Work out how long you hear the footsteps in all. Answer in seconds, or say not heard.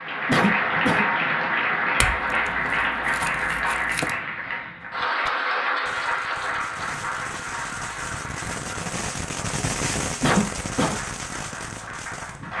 not heard.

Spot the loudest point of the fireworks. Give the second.
10 s.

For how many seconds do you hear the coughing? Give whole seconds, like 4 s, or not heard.
2 s.